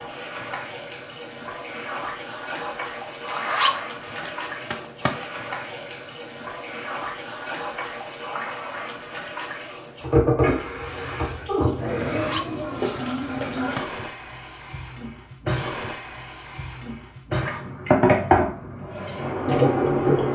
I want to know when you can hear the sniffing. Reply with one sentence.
The sniffing can be heard from 12.2 to 13.1 s.